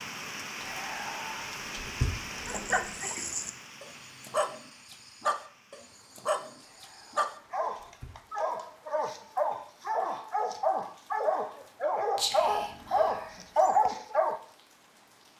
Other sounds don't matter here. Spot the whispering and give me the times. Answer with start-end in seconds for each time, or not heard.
0.6-2.8, 6.6-8.2, 12.2-13.8.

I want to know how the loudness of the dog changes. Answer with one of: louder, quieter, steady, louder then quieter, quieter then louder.
louder.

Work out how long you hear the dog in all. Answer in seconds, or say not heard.
12 s.